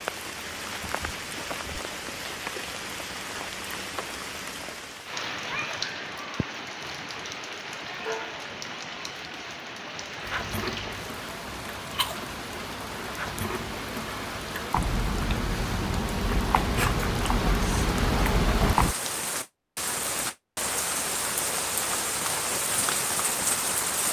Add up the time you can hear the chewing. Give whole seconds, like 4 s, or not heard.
9 s.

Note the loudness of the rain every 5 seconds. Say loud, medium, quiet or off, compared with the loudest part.
medium, medium, medium, loud, loud.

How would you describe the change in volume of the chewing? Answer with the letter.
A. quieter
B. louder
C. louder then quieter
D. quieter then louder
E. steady
B.